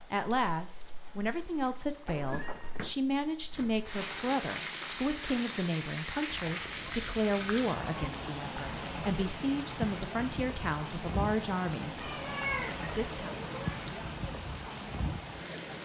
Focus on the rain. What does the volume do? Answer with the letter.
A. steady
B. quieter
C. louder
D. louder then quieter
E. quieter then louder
C.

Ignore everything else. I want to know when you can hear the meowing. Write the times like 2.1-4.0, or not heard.
2.0-3.0, 6.2-8.1, 11.9-13.8.